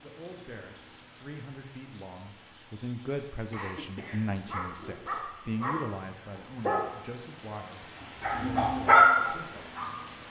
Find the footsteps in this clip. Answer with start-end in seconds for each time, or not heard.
not heard.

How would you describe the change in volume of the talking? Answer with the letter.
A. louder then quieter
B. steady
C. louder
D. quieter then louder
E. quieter
A.